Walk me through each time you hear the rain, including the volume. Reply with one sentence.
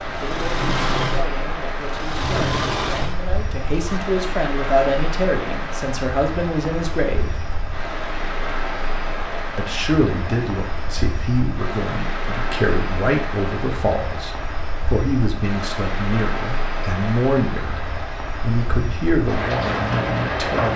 The rain can be heard from 0.0 to 20.7 s, at a steady volume.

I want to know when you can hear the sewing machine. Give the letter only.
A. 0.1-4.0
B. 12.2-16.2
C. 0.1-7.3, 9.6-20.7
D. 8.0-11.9
A.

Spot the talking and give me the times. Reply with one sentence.
You can hear the talking from 0.1 to 7.3 s and from 9.6 to 20.7 s.